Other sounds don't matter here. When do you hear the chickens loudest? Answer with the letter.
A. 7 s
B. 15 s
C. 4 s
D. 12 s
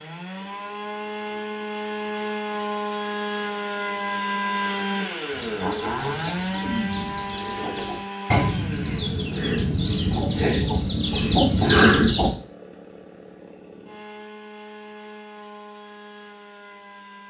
D.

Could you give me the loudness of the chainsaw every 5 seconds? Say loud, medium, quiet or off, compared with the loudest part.
loud, loud, quiet, quiet.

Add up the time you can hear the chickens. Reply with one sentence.
The chickens can be heard for 7 seconds in total.